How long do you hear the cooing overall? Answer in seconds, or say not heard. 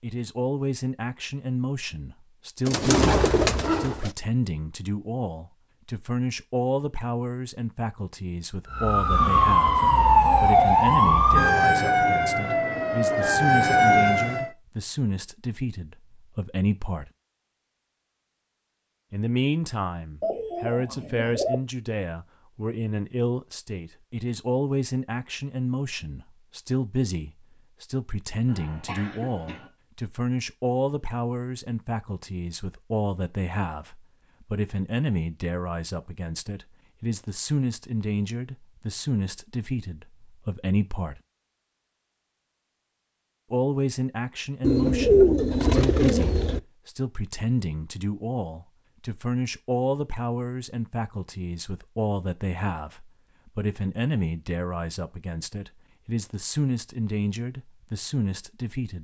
5 s.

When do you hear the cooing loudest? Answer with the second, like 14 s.
45 s.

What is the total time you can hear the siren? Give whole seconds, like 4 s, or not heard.
6 s.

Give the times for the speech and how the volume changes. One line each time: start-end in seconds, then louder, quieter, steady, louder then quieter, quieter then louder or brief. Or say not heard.
0.0-17.1 steady
19.1-41.2 steady
43.5-59.0 steady.